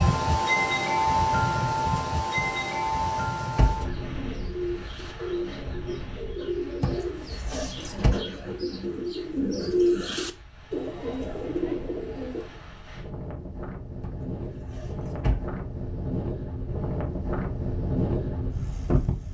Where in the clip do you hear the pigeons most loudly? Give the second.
10 s.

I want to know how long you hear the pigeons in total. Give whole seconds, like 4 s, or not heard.
9 s.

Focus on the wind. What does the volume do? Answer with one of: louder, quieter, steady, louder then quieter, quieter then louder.
quieter then louder.